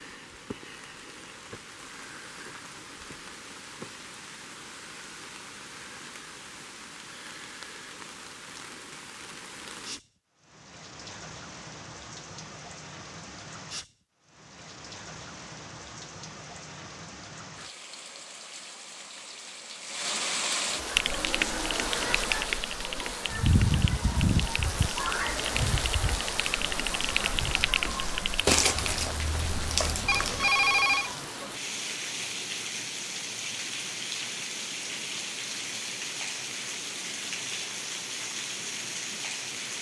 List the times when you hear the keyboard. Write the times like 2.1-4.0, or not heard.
20.9-28.4.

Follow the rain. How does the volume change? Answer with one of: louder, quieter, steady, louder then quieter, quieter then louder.
louder.